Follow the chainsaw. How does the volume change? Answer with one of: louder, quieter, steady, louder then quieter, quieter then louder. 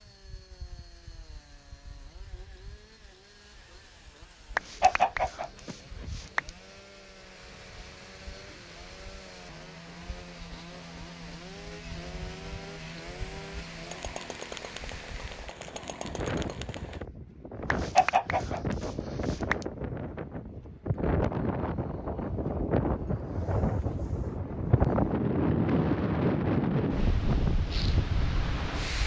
louder.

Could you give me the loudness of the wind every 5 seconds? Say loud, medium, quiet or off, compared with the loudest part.
quiet, quiet, quiet, medium, loud, loud.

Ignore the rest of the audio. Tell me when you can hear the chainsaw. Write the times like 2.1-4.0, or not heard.
0.0-17.1.